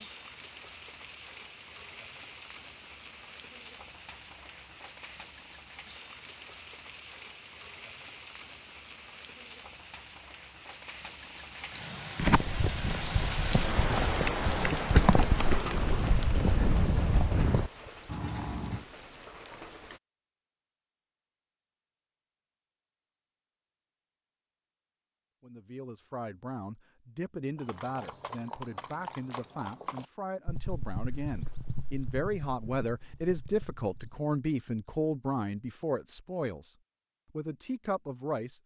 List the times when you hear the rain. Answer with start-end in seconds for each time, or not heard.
0.0-20.0.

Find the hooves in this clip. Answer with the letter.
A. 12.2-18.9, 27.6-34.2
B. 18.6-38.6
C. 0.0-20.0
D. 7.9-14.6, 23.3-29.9
A.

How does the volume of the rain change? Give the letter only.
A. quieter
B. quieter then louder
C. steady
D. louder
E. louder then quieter
E.